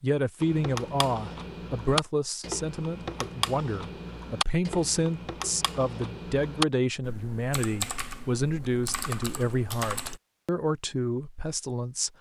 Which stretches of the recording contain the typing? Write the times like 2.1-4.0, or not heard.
0.4-10.2.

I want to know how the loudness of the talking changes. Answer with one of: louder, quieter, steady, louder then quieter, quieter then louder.
steady.